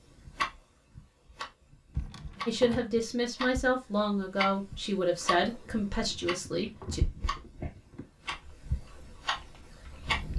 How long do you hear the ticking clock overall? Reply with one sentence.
You can hear the ticking clock for 10 seconds altogether.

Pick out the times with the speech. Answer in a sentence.
You can hear the speech from 2.5 to 7.0 s.